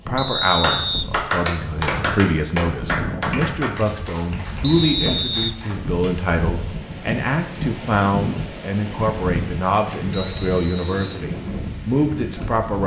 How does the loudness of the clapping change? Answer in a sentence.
The loudness of the clapping goes down.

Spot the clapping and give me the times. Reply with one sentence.
The clapping can be heard from 0.6 to 6.2 s.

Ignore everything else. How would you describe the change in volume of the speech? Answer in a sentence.
The volume of the speech stays about the same.